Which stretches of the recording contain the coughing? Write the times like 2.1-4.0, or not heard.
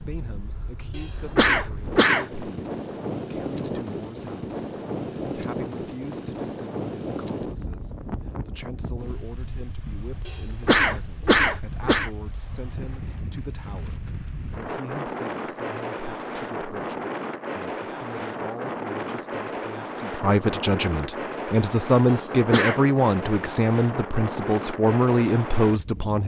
0.9-2.2, 10.2-12.1, 22.1-22.8.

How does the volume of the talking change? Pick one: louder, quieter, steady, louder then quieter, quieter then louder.
louder.